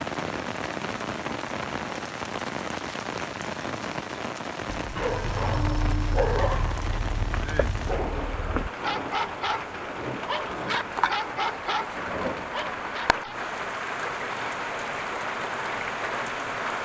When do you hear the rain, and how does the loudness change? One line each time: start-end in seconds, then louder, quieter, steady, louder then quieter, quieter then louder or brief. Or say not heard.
0.0-16.7 steady.